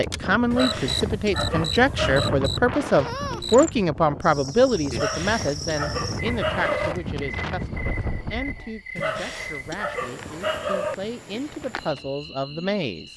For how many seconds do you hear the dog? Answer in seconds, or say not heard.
6 s.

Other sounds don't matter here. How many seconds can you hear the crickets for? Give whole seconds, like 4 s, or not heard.
13 s.